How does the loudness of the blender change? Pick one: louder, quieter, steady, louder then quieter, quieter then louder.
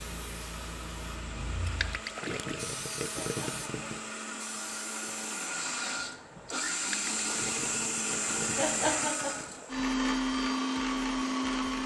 louder.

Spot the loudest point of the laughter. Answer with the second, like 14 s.
9 s.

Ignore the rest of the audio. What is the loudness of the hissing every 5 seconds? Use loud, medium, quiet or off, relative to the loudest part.
loud, loud, off.